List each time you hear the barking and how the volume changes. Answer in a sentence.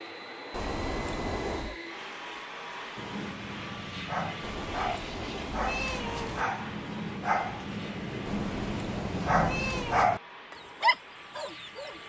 The barking can be heard from 3.0 to 12.0 s, getting louder.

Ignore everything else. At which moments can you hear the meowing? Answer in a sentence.
The meowing can be heard from 0.5 to 1.8 s, from 4.4 to 6.5 s and from 8.2 to 10.1 s.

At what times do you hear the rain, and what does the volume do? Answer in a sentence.
The rain can't be heard in this clip.